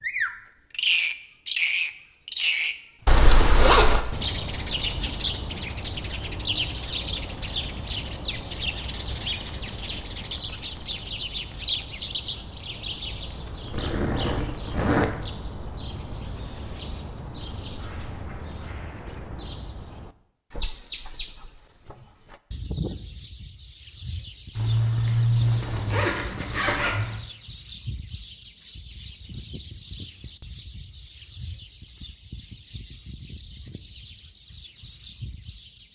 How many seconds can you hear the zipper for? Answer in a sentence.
The zipper can be heard for 5 seconds in total.